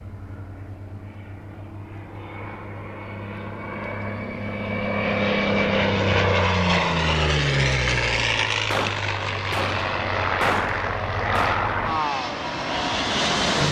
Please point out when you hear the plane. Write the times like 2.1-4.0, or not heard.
0.0-13.6.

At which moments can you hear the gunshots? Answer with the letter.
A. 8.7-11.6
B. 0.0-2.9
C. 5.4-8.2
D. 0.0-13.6
A.